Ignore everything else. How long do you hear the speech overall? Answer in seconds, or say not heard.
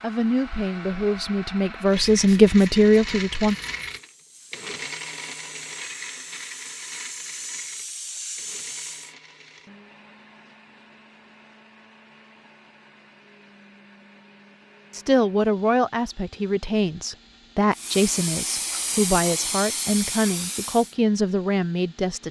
11 s.